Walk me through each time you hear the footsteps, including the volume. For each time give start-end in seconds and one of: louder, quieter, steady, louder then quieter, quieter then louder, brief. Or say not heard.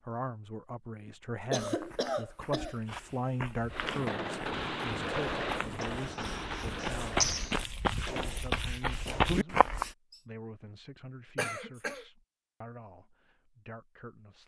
1.6-9.9 louder.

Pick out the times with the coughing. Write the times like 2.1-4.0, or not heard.
1.1-3.2, 5.8-7.5, 11.3-12.1.